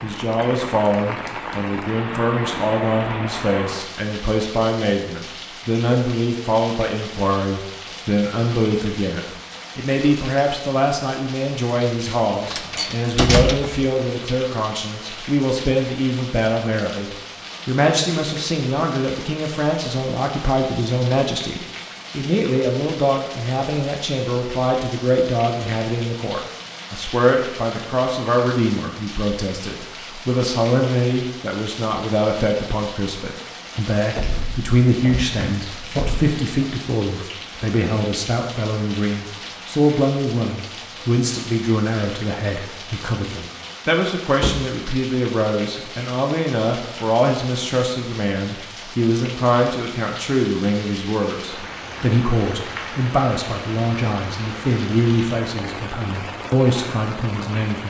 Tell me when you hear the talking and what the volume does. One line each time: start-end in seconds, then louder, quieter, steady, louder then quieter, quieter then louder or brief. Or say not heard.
0.0-57.8 steady.